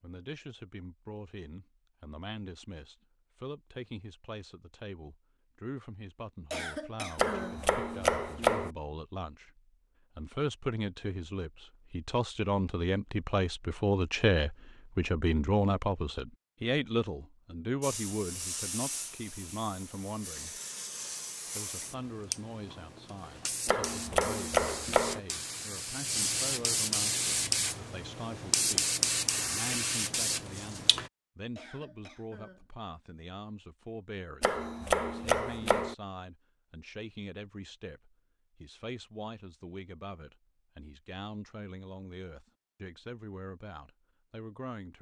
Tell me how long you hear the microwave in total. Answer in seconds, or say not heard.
not heard.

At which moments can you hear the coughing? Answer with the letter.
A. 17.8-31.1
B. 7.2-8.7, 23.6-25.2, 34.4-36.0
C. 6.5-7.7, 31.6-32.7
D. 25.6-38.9
C.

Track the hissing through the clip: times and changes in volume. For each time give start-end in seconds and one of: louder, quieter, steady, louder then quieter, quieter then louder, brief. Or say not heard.
17.8-31.1 louder.